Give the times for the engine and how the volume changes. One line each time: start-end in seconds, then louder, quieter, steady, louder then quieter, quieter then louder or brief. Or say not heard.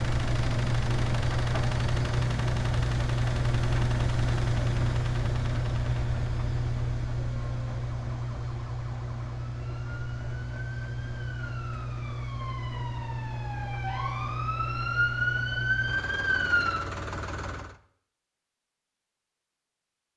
0.0-17.8 quieter.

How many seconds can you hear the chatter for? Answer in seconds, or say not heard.
not heard.